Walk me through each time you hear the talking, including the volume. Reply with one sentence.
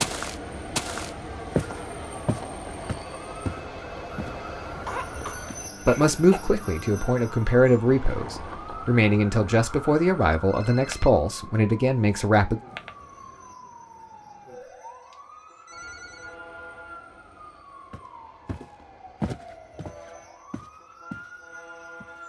The talking can be heard from 5.8 to 12.6 s, at a steady volume.